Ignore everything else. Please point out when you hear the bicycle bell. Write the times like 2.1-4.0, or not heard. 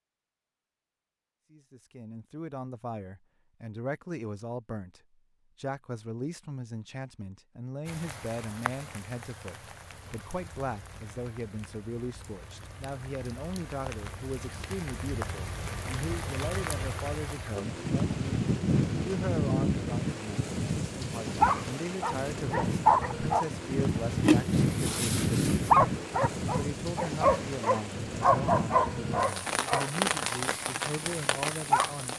not heard.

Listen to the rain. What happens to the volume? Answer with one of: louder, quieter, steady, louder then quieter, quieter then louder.
louder.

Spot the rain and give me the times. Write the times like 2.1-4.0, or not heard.
7.8-32.1.